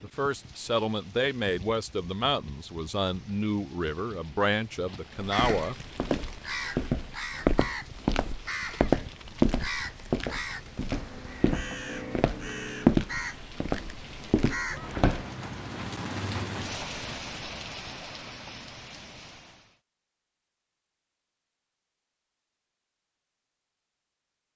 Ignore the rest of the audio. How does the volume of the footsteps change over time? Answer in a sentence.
The loudness of the footsteps goes up, then down.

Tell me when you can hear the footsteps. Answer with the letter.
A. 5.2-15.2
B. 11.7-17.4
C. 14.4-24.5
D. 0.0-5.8
A.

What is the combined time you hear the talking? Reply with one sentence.
The talking can be heard for 6 seconds in total.